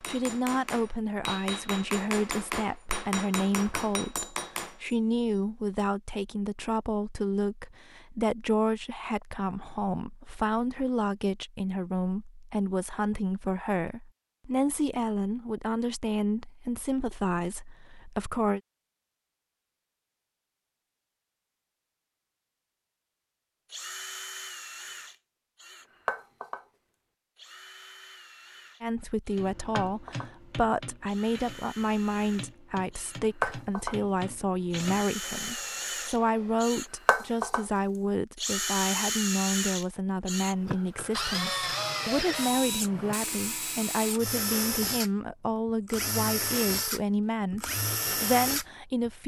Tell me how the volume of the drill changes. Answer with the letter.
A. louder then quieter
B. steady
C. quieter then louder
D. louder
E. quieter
D.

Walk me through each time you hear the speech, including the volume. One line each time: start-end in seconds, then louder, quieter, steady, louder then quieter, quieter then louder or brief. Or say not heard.
0.1-18.6 steady
28.8-49.2 steady.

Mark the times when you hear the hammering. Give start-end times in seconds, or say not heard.
0.0-5.0, 29.4-36.7.